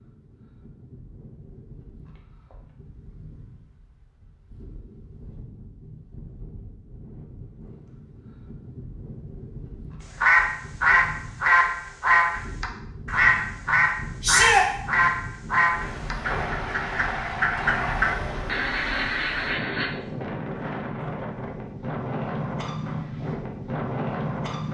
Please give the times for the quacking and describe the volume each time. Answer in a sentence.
You can hear the quacking from 10.2 to 19.9 s, getting quieter.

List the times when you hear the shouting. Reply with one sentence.
You can hear the shouting from 14.2 to 14.7 s.